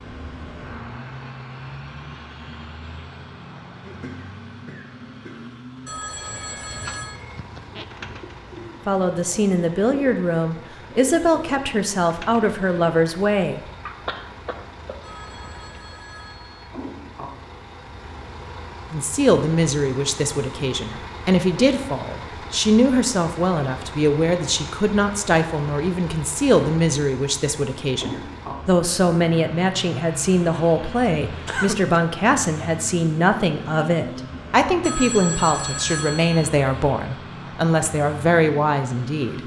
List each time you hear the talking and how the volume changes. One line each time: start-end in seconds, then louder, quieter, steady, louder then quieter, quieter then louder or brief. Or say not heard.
8.8-13.6 steady
18.9-39.4 steady.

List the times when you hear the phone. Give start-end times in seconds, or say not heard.
5.8-7.2, 15.0-16.7, 34.8-36.5.